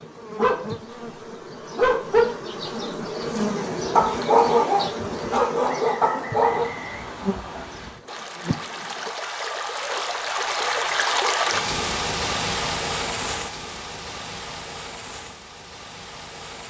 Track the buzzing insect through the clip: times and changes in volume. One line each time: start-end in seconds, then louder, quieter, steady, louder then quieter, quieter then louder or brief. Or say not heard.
0.0-9.1 louder then quieter.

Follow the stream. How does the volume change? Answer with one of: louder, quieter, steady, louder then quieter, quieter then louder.
louder then quieter.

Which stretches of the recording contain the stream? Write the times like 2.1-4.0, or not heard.
6.2-16.6.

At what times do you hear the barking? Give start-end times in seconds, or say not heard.
0.0-6.7.